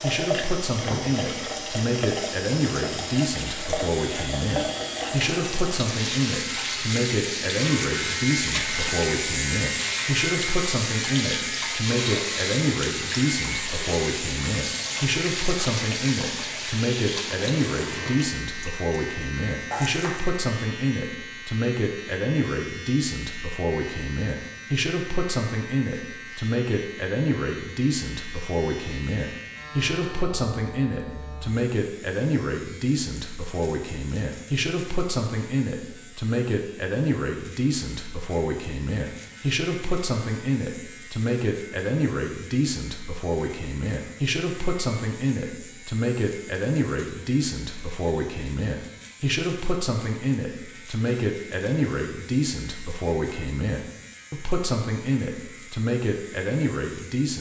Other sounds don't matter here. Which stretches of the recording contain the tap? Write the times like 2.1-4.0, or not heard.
0.0-20.4.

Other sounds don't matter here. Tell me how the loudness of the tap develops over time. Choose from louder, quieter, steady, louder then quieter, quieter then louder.
steady.